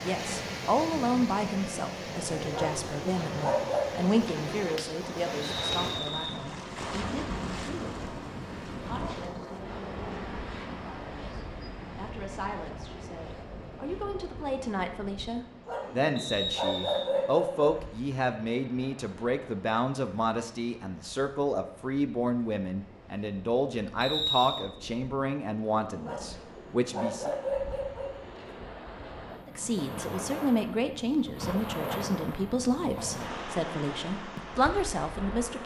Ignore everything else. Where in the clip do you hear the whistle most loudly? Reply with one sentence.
The volume of the whistle peaks at 24 seconds.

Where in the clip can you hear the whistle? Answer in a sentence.
The whistle can be heard from 5.4 to 6.3 s, from 16.1 to 17.1 s and from 24.0 to 24.6 s.